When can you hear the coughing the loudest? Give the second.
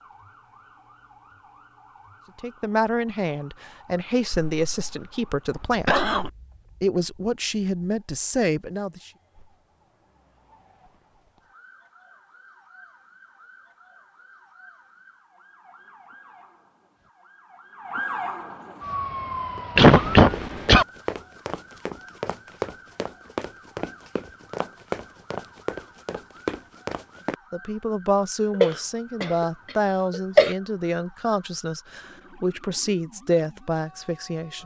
20 s.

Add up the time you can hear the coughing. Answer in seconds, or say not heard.
5 s.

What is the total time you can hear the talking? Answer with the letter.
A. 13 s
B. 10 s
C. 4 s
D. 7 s
A.